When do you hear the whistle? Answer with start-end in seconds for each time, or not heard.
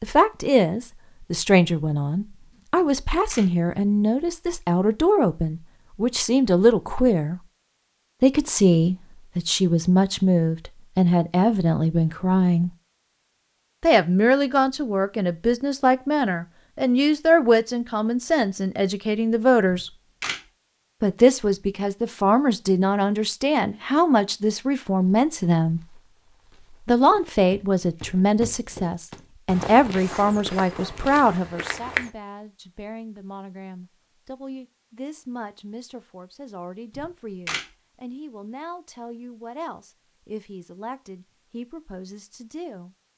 not heard.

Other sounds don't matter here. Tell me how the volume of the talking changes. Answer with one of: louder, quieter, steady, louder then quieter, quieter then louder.
quieter.